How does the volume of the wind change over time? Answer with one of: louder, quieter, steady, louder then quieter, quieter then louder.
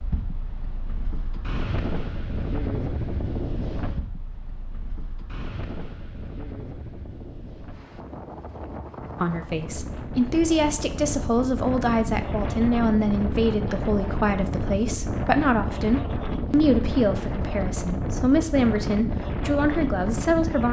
quieter then louder.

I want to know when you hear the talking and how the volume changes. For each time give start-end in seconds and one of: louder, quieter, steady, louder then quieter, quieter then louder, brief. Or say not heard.
9.2-20.6 steady.